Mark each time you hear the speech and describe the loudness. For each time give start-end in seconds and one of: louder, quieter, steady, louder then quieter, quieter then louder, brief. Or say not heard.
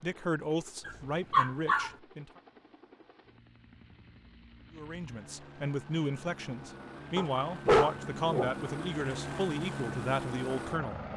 0.0-2.4 brief
4.8-11.0 steady.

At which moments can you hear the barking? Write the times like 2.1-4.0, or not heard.
0.8-1.9, 7.2-8.6.